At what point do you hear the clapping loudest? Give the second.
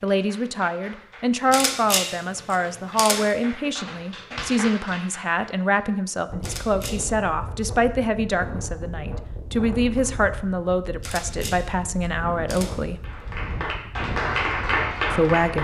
15 s.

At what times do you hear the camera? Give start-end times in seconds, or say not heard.
1.5-3.4, 6.4-7.0, 11.0-12.8.